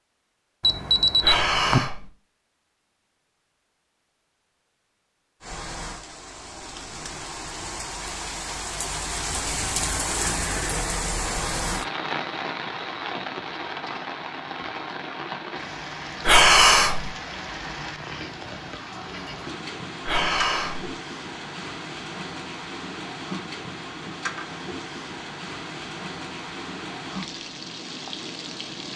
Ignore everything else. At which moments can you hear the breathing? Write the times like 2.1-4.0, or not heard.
1.2-2.1, 16.2-17.1, 20.1-20.9.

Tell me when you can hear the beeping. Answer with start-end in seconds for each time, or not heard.
0.6-1.8.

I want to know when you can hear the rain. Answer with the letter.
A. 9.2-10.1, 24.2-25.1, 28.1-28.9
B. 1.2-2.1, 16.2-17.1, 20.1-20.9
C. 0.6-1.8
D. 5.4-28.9
D.